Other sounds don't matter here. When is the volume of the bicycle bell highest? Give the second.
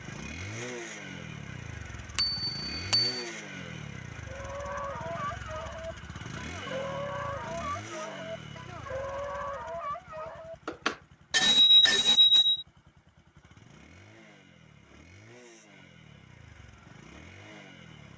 12 s.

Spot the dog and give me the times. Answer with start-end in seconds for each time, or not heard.
4.2-10.6.